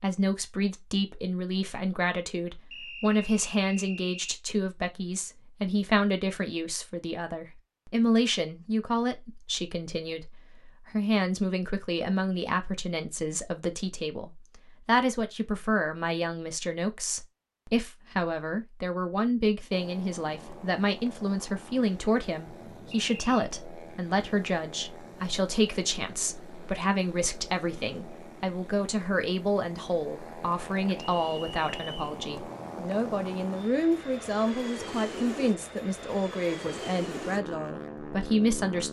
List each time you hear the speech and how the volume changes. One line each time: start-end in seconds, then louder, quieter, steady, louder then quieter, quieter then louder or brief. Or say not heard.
0.0-38.8 steady.